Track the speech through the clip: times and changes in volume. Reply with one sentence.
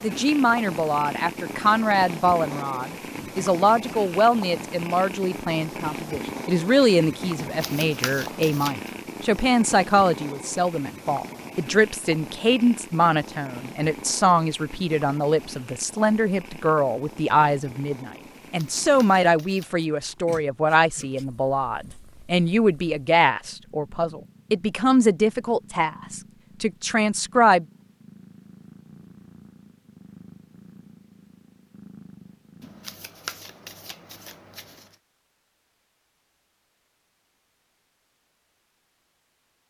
The speech can be heard from 0.0 to 27.6 s, at a steady volume.